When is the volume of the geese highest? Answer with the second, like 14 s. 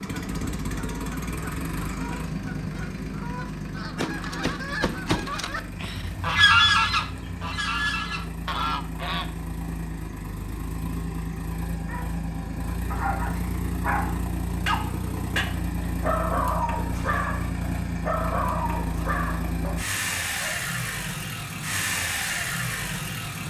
7 s.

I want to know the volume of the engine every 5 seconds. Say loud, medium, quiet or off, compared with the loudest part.
loud, medium, loud, loud, loud.